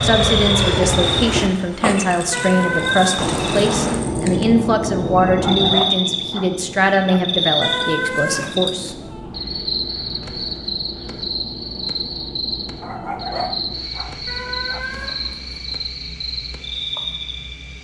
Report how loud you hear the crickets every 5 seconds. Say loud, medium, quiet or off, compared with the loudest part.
loud, loud, medium, medium.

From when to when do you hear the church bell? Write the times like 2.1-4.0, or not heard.
not heard.